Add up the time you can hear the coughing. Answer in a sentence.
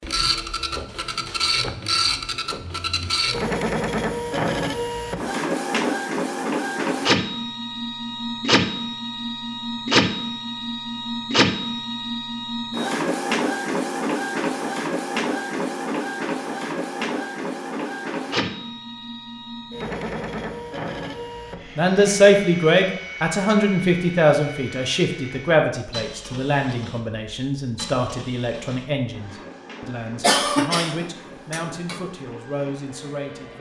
The coughing can be heard for 2 seconds in total.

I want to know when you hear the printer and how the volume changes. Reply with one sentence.
You can hear the printer from 0.0 to 33.5 s, getting quieter.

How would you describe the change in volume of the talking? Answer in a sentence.
The loudness of the talking goes down.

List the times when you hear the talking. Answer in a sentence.
You can hear the talking from 21.8 to 33.5 s.